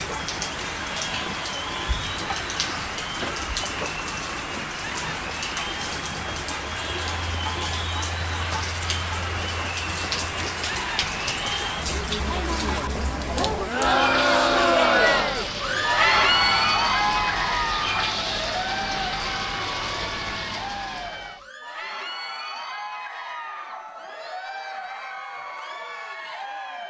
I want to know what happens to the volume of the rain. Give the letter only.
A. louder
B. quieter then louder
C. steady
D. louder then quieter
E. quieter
C.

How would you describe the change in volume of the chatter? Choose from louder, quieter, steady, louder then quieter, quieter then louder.
louder then quieter.